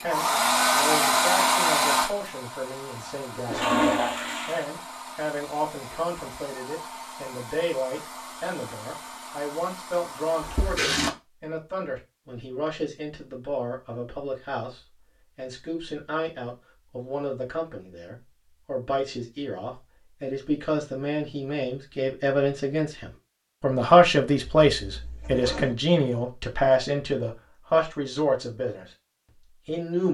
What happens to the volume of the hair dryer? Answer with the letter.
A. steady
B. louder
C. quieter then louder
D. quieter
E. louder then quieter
D.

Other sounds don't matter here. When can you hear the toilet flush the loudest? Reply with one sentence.
The loudest moment of the toilet flush is at 4 seconds.